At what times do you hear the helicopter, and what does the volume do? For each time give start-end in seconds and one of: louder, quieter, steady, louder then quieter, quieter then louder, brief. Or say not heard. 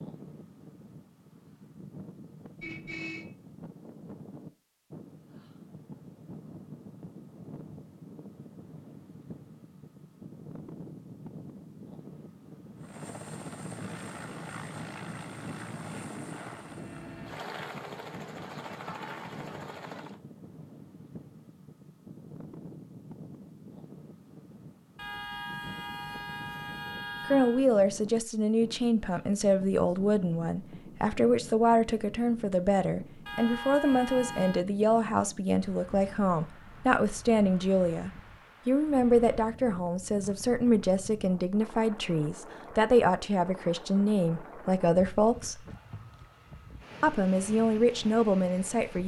12.8-20.2 steady.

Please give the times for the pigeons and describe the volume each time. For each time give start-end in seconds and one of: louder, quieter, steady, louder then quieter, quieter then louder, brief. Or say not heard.
not heard.